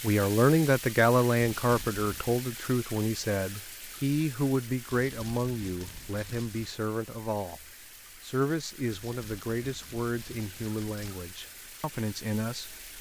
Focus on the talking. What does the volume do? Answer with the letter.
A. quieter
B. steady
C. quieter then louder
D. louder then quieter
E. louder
A.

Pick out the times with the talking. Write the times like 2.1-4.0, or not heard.
0.0-7.6, 8.2-12.8.